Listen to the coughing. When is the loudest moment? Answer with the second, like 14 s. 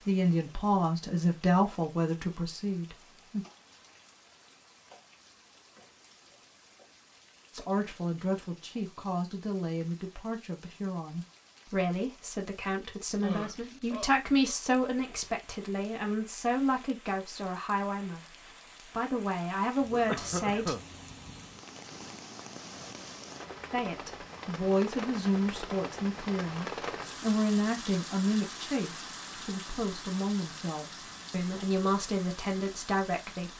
20 s.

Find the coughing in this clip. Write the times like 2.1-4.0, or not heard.
13.2-14.2, 19.9-20.9.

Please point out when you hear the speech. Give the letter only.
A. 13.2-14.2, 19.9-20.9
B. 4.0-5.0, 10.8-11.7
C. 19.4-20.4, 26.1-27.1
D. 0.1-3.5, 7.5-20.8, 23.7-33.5
D.